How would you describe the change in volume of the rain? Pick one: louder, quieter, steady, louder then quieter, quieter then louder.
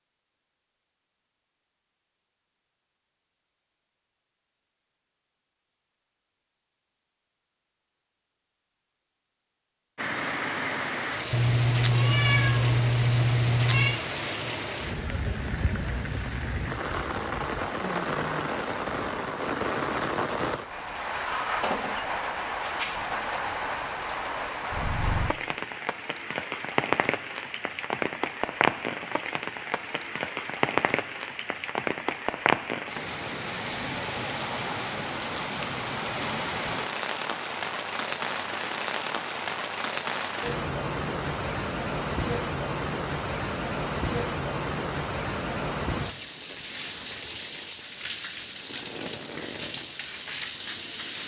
steady.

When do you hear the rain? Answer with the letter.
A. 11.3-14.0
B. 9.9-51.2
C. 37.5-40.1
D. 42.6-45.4
B.